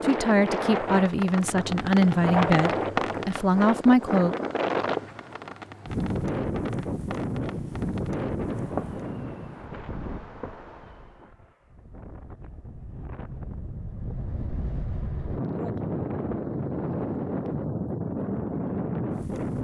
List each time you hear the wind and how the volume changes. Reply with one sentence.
You can hear the wind from 0.0 to 19.5 s, getting quieter then louder.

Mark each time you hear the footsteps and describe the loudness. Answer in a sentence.
The footsteps can't be heard in this clip.